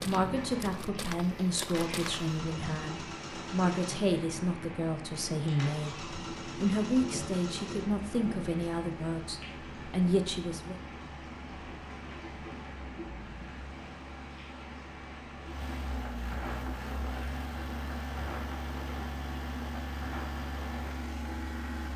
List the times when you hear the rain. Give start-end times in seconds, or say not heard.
0.0-21.9.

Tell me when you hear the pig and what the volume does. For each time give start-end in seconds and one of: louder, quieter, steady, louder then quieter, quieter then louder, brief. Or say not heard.
not heard.